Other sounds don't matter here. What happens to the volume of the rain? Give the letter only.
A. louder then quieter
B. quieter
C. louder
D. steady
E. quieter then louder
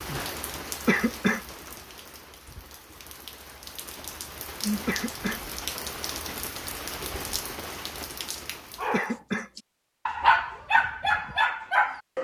E.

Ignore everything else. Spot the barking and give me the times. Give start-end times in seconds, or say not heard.
8.8-12.1.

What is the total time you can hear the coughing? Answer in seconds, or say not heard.
2 s.